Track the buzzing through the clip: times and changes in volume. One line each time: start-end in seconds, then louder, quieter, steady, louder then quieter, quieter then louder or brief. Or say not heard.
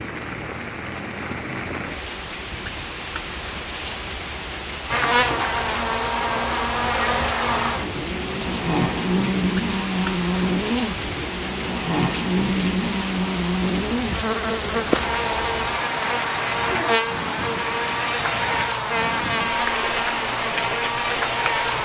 4.9-21.7 steady.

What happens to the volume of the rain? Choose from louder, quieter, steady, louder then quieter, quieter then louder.
steady.